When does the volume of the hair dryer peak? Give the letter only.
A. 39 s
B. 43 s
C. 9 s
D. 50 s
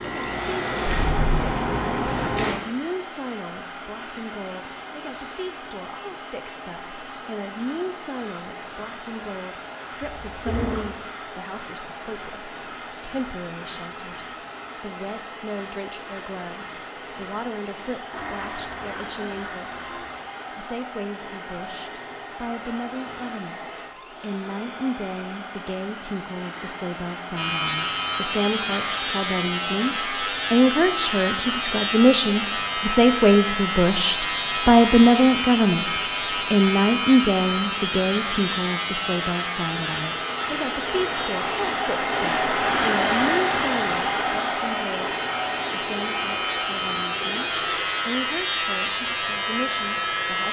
B.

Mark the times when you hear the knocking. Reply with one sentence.
The knocking can be heard from 0.8 to 1.6 s.